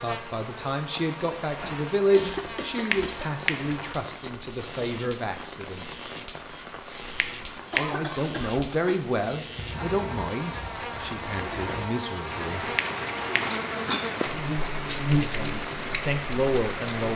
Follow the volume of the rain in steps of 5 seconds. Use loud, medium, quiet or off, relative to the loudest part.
medium, medium, loud, loud.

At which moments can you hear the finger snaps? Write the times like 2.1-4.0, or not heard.
2.9-3.7, 7.2-8.0, 12.8-13.6.